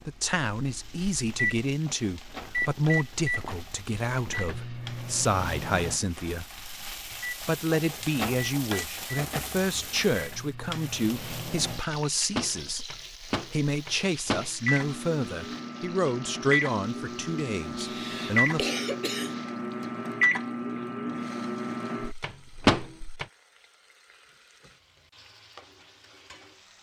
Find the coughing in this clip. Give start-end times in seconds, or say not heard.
17.8-19.4.